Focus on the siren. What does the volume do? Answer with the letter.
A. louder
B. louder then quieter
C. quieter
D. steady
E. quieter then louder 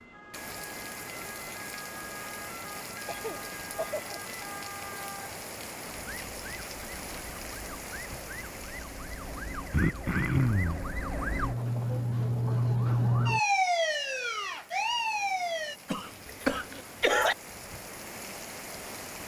A.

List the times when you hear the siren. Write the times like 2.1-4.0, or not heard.
0.0-15.8.